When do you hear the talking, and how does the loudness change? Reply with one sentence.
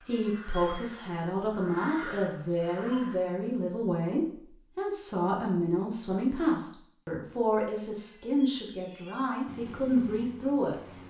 You can hear the talking from 0.1 to 11.0 s, at a steady volume.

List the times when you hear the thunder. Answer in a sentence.
The thunder can't be heard in this clip.